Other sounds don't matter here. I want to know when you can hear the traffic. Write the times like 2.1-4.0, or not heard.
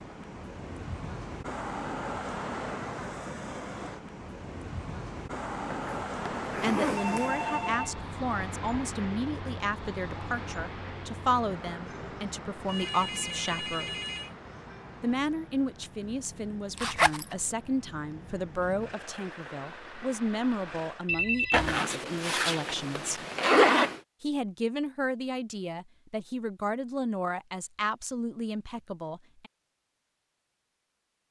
0.0-21.1.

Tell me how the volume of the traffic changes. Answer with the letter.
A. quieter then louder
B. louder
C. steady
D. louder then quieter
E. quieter
E.